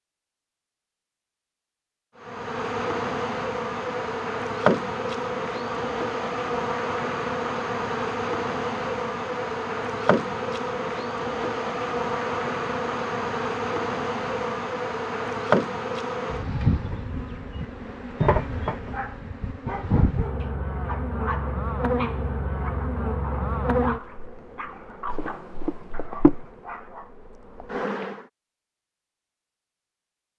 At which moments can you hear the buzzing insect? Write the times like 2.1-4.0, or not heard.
2.2-28.2.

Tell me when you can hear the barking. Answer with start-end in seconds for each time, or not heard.
18.9-27.1.